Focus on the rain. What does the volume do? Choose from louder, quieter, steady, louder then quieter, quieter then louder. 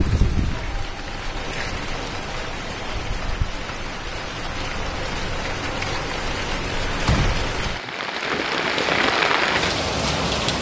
louder.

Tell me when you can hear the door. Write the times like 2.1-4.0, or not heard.
7.0-7.9.